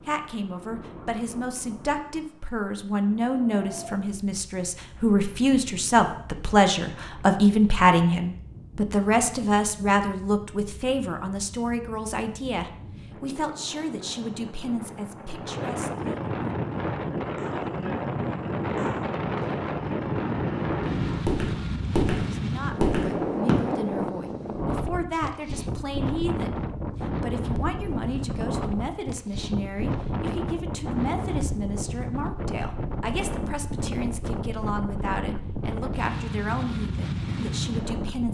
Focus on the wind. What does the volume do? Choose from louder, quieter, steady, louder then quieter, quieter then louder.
louder.